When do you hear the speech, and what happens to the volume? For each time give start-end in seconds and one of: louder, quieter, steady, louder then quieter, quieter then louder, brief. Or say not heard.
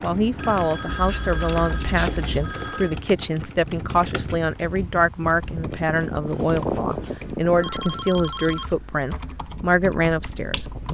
0.0-10.7 steady.